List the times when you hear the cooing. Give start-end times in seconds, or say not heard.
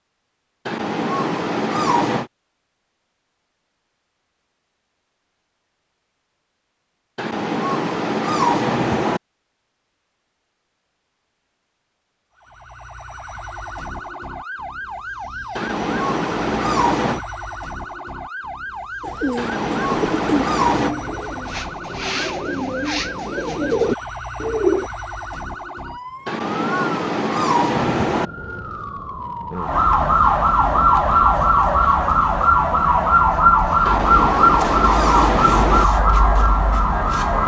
19.0-24.9.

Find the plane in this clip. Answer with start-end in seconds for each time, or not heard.
not heard.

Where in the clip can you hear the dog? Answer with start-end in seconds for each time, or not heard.
0.7-2.3, 7.2-9.2, 15.6-17.2, 19.4-20.9, 26.2-28.3, 33.9-35.9.